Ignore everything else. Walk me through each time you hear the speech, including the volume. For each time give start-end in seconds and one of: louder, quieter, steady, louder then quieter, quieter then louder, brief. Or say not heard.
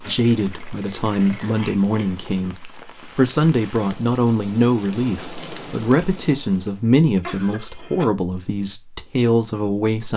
0.0-10.1 steady.